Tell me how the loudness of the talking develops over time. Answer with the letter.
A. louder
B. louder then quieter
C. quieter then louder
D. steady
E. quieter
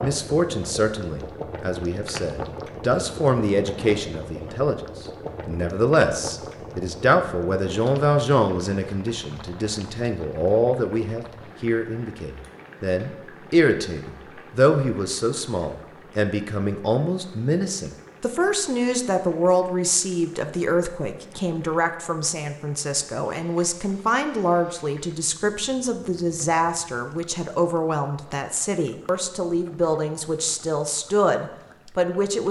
D.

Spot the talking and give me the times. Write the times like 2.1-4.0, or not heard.
0.0-32.4.